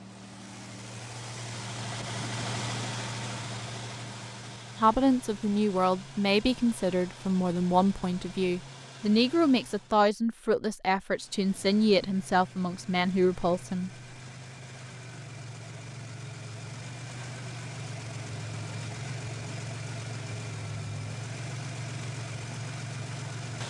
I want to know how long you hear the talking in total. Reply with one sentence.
You can hear the talking for 9 seconds altogether.